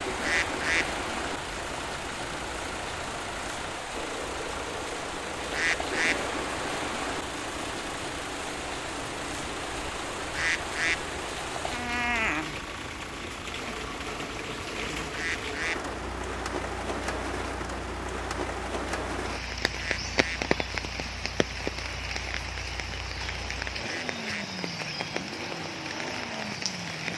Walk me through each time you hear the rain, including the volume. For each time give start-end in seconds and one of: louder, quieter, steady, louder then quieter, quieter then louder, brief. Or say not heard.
0.0-27.1 steady.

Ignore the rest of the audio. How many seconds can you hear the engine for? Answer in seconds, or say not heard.
27 s.